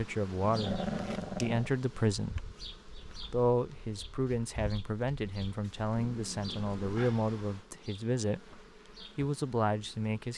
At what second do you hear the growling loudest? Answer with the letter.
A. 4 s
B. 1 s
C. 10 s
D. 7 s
B.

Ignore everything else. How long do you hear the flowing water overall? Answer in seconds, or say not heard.
not heard.